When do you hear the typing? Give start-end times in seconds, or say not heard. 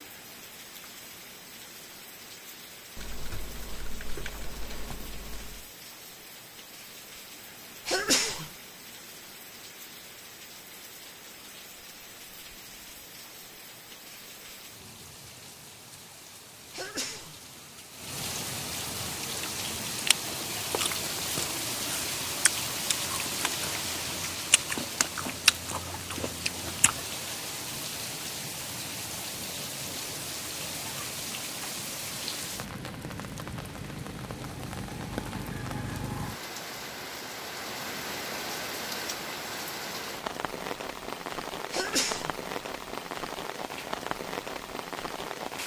3.0-5.7.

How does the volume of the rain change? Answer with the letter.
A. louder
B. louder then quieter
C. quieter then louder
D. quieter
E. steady
A.